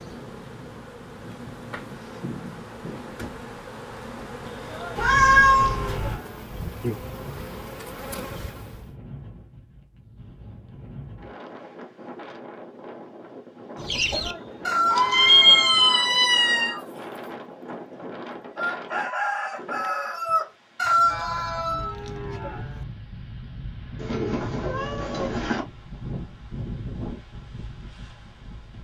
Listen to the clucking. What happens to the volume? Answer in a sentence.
The loudness of the clucking goes down, then up.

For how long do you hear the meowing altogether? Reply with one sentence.
You can hear the meowing for 5 seconds altogether.